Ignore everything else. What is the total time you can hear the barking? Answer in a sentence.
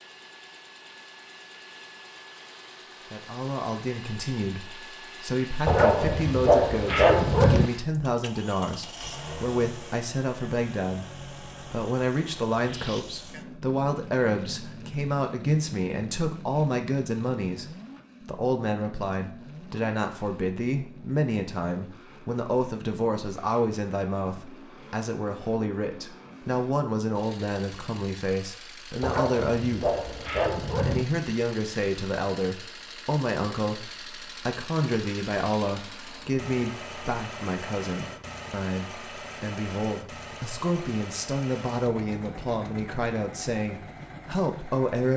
You can hear the barking for 4 seconds altogether.